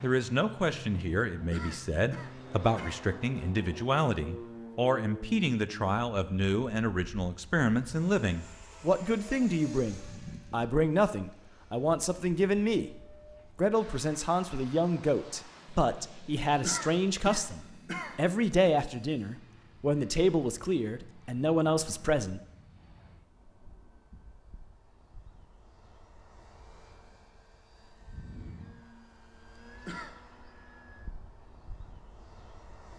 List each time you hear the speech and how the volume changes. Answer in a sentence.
You can hear the speech from 0.0 to 22.4 s, at a steady volume.